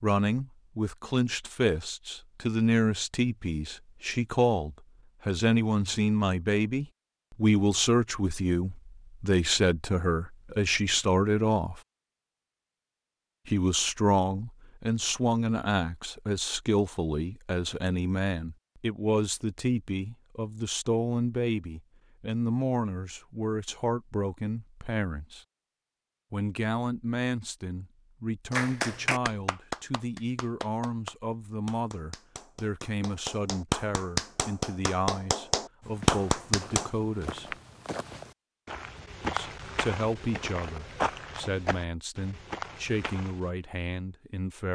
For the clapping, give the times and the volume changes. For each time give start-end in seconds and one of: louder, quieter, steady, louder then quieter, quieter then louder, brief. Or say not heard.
28.5-36.9 quieter then louder.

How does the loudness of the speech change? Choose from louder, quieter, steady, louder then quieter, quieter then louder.
quieter.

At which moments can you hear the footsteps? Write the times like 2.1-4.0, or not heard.
35.8-43.5.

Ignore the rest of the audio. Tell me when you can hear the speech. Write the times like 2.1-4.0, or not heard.
0.0-11.8, 13.4-25.4, 26.3-37.5, 39.2-44.7.